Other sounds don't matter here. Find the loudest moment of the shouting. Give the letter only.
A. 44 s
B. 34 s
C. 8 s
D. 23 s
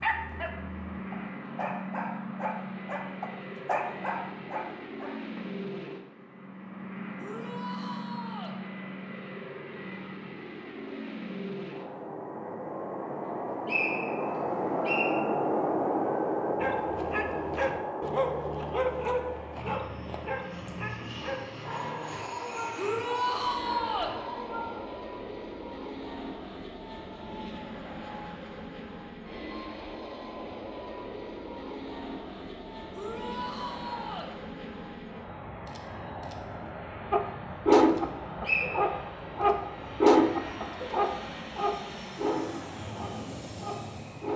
D.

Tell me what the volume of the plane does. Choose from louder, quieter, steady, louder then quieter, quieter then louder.
louder then quieter.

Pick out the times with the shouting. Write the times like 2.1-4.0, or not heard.
7.2-8.6, 22.8-24.1, 32.9-34.3.